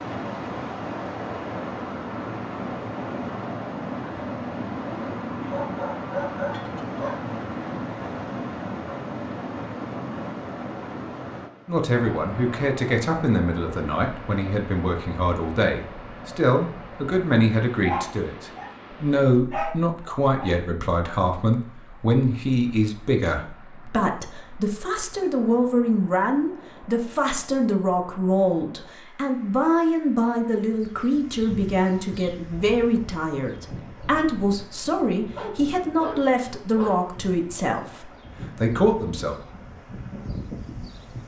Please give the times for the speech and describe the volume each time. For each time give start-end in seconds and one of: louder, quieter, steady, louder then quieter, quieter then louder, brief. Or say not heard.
11.7-39.4 steady.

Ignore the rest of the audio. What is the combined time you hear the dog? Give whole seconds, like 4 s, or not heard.
6 s.